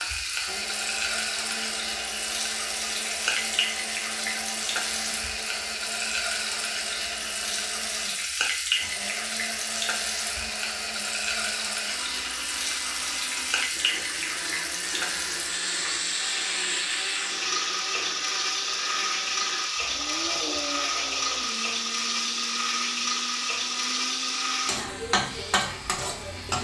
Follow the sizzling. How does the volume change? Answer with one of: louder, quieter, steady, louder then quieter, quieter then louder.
steady.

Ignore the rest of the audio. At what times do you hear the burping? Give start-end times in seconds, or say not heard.
not heard.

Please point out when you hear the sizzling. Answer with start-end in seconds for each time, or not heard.
0.0-26.5.